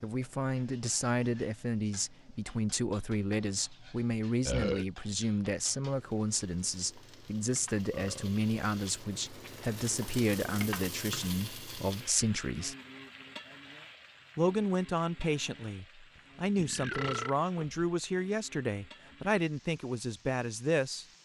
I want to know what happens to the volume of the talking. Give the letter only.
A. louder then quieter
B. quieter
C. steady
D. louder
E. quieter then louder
C.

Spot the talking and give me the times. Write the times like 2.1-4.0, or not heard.
0.0-12.8, 14.3-21.1.